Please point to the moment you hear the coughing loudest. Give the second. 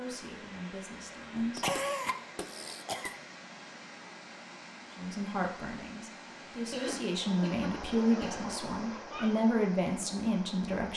2 s.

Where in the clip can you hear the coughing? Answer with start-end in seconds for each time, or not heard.
1.6-3.1, 6.7-9.3.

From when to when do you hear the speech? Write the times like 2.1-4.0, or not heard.
0.0-1.6, 5.0-10.9.